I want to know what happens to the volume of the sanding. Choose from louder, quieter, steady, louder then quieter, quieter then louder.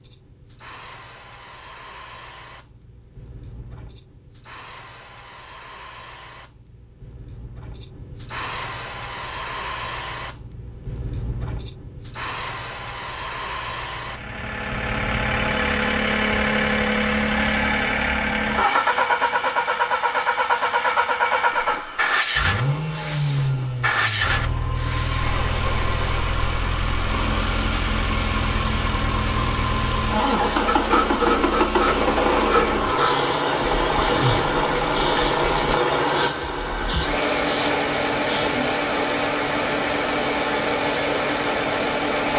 quieter.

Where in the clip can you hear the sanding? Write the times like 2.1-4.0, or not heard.
30.6-35.8.